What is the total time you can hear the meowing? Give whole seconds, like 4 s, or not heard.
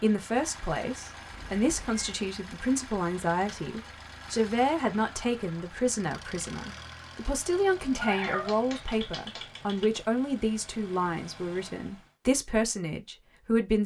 3 s.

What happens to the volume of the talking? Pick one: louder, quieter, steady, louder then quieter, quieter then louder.
steady.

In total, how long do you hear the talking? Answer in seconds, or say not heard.
14 s.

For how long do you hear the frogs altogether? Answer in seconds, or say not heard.
not heard.